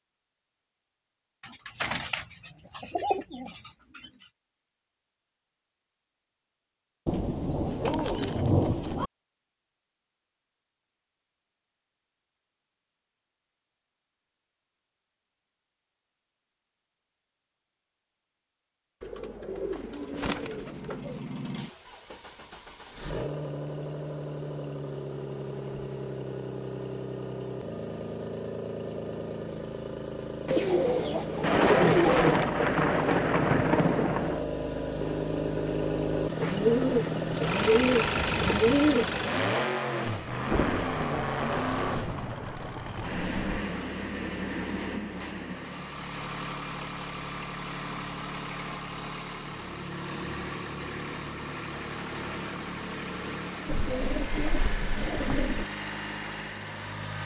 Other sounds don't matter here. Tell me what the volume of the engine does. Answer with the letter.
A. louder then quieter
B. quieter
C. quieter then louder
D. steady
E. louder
A.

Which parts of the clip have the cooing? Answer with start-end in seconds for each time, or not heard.
1.4-4.1, 19.0-21.2, 30.4-32.5, 36.4-39.1, 53.6-55.6.